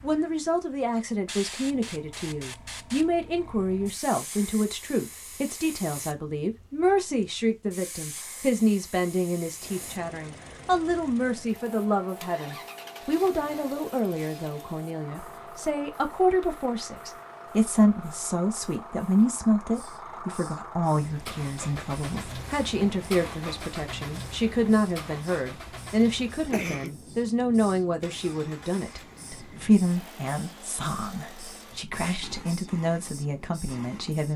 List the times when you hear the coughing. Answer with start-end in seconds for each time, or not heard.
26.5-26.9.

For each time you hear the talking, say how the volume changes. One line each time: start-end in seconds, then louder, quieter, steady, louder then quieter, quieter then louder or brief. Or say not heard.
0.0-34.3 steady.